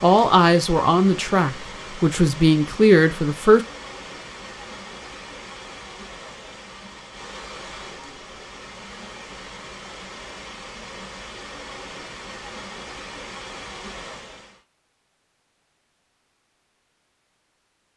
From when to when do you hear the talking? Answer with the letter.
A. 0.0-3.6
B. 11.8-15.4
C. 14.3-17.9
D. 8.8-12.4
A.